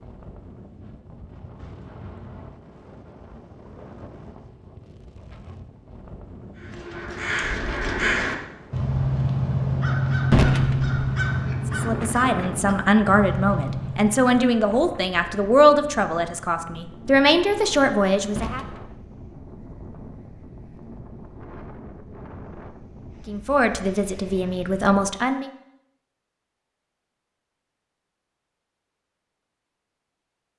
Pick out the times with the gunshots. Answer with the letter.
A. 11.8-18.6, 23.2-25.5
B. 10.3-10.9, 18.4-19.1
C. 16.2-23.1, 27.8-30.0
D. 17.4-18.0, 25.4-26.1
B.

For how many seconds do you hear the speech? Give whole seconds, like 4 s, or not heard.
9 s.